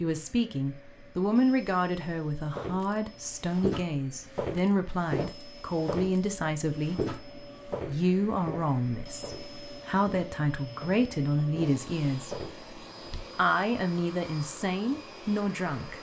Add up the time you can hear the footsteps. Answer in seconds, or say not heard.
11 s.